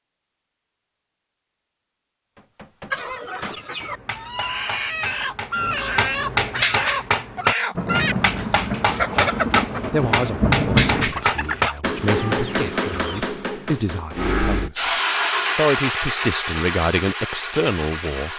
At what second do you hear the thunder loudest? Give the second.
11 s.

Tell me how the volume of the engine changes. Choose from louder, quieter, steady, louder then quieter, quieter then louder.
quieter.